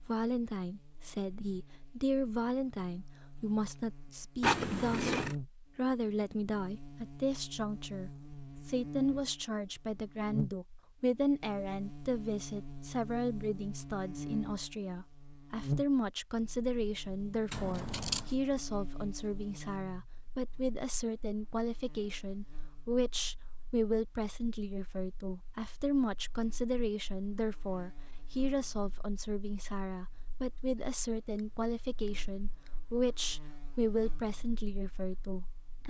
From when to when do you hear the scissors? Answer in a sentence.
You can hear the scissors from 4.4 to 5.3 s, from 17.5 to 18.4 s and from 30.8 to 32.8 s.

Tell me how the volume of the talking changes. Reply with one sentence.
The loudness of the talking stays about the same.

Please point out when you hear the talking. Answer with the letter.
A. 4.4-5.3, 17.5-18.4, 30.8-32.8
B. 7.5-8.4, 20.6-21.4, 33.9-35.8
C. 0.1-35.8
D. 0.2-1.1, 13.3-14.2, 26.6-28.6
C.